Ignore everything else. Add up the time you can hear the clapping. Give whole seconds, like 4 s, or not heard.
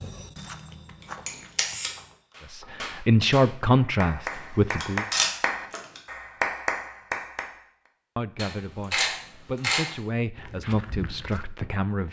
5 s.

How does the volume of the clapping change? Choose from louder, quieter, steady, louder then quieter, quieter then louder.
louder.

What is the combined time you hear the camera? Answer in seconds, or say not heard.
4 s.